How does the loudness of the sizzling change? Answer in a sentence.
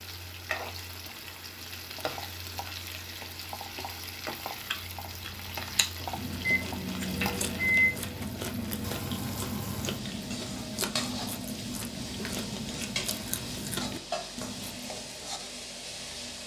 The loudness of the sizzling stays about the same.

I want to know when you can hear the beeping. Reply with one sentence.
You can hear the beeping from 6.2 to 7.9 s.